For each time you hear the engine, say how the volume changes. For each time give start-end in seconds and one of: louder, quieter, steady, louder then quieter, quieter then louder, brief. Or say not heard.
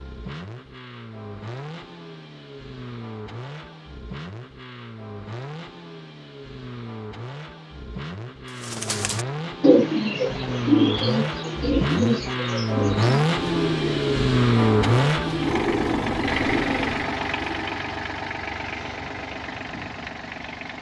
0.0-20.7 louder then quieter.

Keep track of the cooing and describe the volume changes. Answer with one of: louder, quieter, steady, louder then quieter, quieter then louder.
quieter.